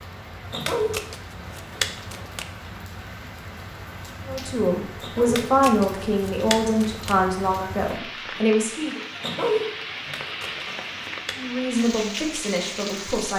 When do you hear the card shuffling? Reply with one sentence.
You can hear the card shuffling from 0.6 to 2.5 s, from 5.2 to 7.2 s and from 10.1 to 11.4 s.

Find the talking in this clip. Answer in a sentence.
You can hear the talking from 4.2 to 9.0 s and from 11.3 to 13.3 s.